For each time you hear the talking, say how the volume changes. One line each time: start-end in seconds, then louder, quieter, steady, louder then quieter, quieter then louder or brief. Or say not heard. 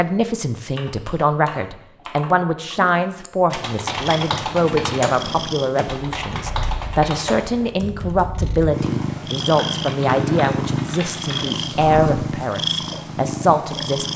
0.0-14.1 steady.